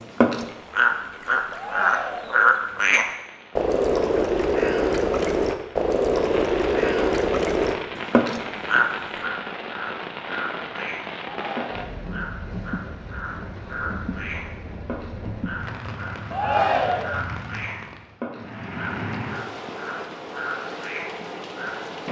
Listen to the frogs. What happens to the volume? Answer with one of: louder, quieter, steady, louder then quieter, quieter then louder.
quieter.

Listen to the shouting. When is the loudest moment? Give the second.
17 s.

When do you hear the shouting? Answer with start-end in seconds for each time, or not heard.
1.6-2.5, 11.3-12.1, 16.3-17.2.